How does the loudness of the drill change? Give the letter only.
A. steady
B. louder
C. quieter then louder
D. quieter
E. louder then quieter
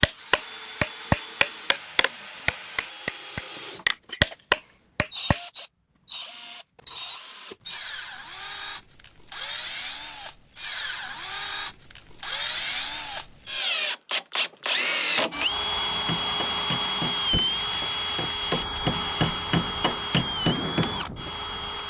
B.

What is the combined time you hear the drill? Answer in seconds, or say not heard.
22 s.